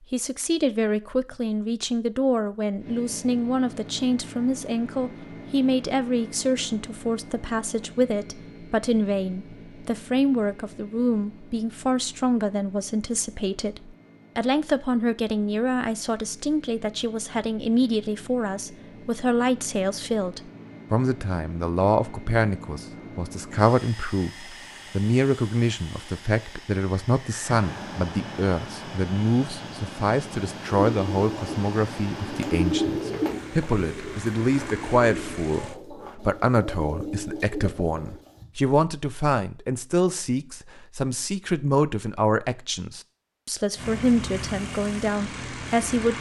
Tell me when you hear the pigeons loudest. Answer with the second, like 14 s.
33 s.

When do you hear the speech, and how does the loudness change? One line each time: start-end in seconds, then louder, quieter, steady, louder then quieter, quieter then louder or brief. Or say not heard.
0.1-46.1 steady.